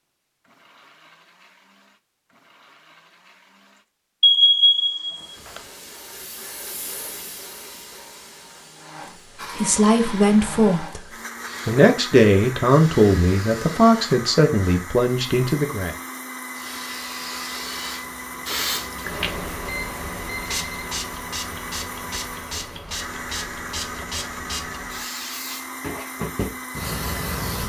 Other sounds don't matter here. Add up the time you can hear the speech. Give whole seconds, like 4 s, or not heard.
6 s.